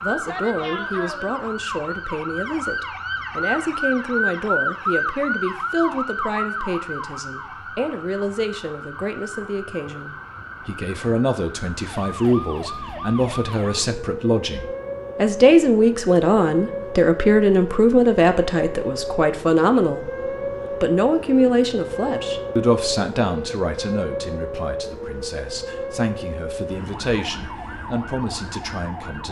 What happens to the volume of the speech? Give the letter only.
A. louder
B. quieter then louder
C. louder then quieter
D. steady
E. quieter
C.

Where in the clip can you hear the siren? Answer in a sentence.
You can hear the siren from 0.0 to 29.2 s.